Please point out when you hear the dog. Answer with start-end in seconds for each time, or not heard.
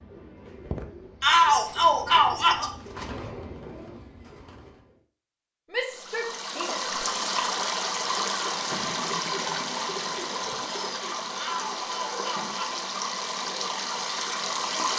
not heard.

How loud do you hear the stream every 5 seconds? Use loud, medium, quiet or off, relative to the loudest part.
off, loud, loud.